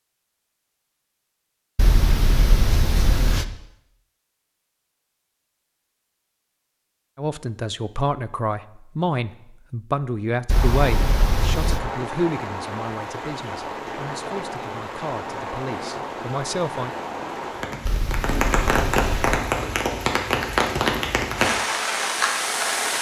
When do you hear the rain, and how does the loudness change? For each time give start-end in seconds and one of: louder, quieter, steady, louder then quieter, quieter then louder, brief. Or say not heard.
10.5-22.9 louder.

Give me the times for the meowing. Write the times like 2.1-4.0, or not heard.
1.8-3.5, 10.4-11.8, 17.9-19.4.